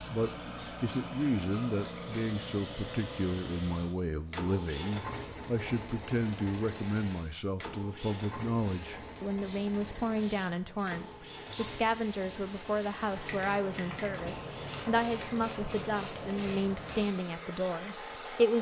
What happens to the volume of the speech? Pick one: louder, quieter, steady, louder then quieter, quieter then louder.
steady.